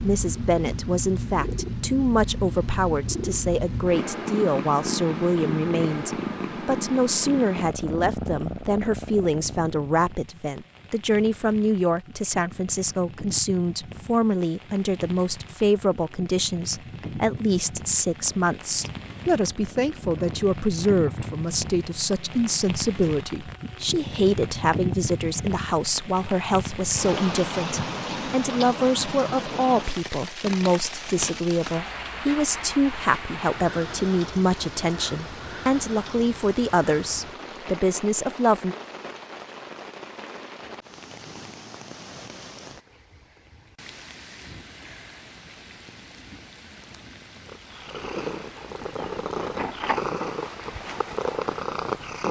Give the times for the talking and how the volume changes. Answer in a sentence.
The talking can be heard from 0.0 to 38.8 s, at a steady volume.